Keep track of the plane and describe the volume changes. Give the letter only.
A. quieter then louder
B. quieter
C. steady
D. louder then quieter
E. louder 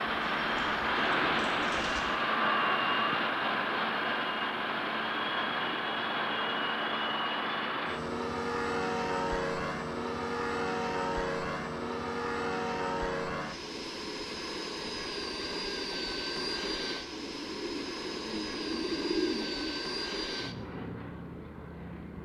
B.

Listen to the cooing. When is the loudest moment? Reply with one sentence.
The loudest moment of the cooing is at 19 seconds.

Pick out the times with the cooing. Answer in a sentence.
The cooing can be heard from 0.2 to 2.0 s and from 17.1 to 19.8 s.